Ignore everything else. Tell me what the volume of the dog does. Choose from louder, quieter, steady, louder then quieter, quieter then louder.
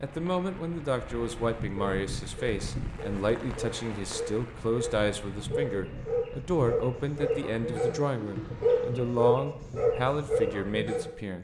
louder.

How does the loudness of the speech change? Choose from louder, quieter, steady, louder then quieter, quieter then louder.
steady.